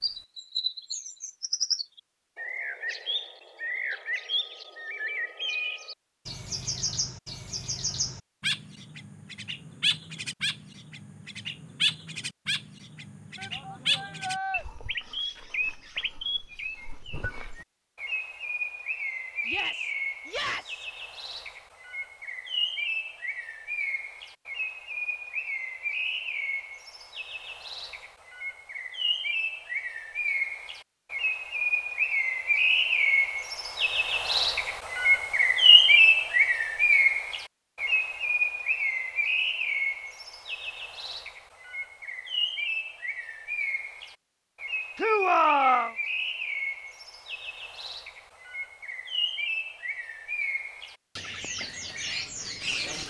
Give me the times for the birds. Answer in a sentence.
You can hear the birds from 0.0 to 53.0 s.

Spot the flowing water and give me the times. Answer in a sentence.
You can't hear the flowing water here.